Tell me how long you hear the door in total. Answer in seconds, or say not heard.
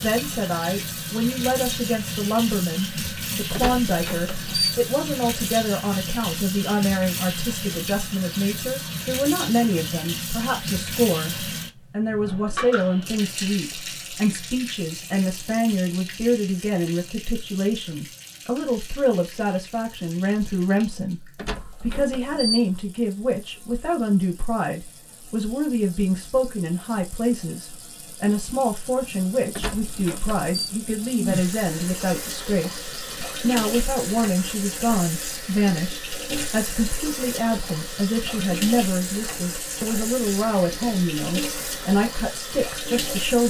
4 s.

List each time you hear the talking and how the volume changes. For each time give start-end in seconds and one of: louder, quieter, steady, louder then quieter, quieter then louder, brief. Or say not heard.
0.0-43.4 steady.